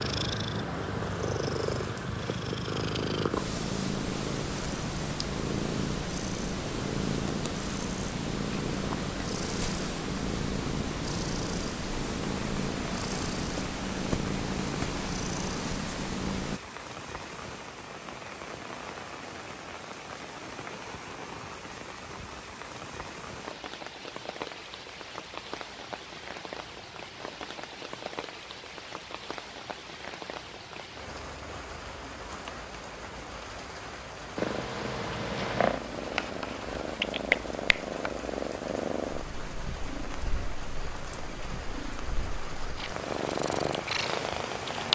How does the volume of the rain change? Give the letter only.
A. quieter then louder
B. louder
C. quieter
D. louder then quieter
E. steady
E.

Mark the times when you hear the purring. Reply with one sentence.
The purring can be heard from 0.0 to 16.6 s and from 34.4 to 44.9 s.